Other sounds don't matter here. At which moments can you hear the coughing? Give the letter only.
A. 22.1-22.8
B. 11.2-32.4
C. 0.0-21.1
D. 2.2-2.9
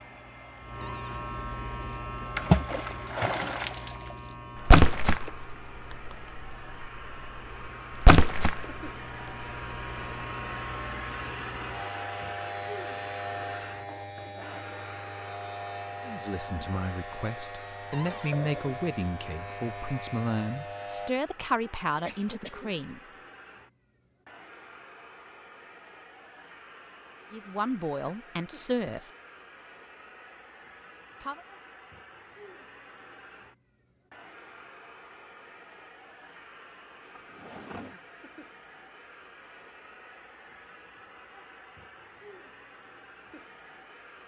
A.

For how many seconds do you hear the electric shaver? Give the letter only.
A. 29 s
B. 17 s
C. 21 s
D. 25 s
C.